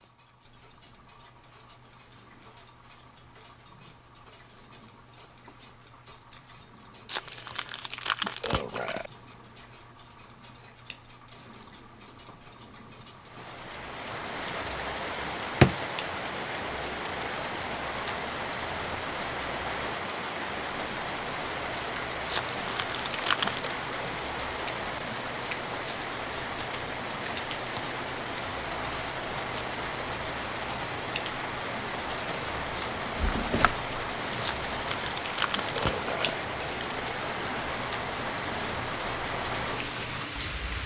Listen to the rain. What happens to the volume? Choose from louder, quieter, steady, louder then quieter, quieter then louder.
steady.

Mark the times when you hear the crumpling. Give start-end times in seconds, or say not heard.
7.0-9.1, 22.3-23.7, 34.4-36.4.